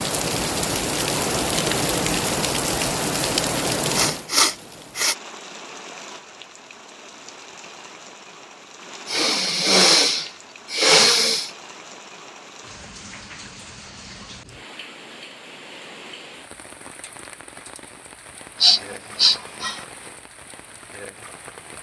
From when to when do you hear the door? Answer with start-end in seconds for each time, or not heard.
not heard.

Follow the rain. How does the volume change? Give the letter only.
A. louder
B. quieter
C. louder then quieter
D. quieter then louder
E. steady
B.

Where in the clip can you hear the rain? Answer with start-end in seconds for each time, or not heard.
0.0-21.7.